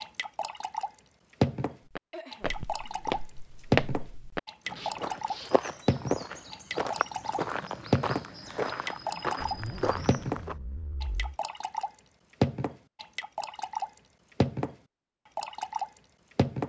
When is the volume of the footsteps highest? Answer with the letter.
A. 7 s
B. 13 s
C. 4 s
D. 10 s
C.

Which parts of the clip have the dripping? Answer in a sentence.
You can hear the dripping from 0.0 to 14.8 s and from 15.3 to 16.6 s.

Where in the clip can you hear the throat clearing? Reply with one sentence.
The throat clearing can be heard from 2.1 to 3.1 s.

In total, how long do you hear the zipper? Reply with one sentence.
The zipper can be heard for 3 seconds in total.